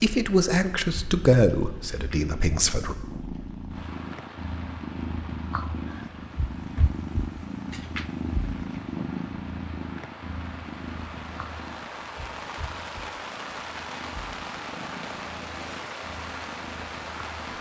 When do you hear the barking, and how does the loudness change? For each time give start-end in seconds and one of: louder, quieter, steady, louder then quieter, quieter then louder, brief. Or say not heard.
not heard.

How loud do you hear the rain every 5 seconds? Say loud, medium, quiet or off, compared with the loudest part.
medium, medium, loud, loud.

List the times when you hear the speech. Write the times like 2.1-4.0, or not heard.
0.0-3.0.